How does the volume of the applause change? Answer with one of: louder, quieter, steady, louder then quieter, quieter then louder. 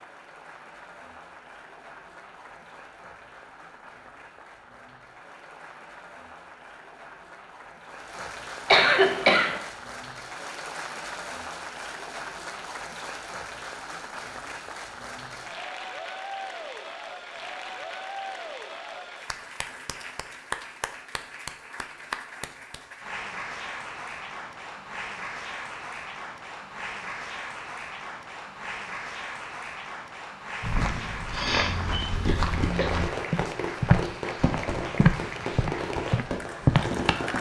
louder.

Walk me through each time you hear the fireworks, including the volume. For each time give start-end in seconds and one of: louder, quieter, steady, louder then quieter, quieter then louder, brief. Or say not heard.
32.5-37.3 steady.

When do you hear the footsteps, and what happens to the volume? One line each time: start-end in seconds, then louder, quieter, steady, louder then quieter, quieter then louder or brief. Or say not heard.
30.6-37.3 louder.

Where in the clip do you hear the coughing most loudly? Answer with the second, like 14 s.
9 s.